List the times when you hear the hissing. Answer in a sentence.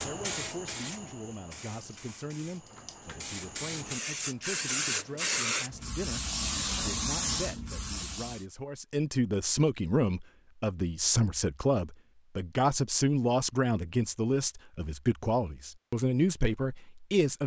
The hissing can be heard from 0.0 to 8.4 s.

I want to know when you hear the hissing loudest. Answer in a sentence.
The loudest moment of the hissing is at 5 seconds.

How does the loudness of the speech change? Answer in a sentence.
The volume of the speech goes up.